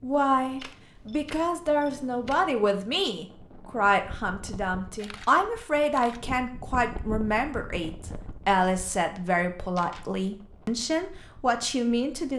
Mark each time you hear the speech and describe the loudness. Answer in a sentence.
You can hear the speech from 0.0 to 12.3 s, at a steady volume.